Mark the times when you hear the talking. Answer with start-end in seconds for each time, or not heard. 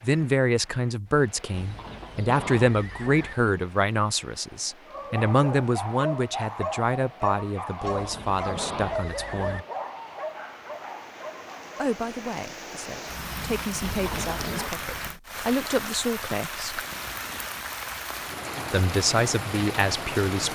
0.0-9.7, 11.8-16.9, 18.7-20.5.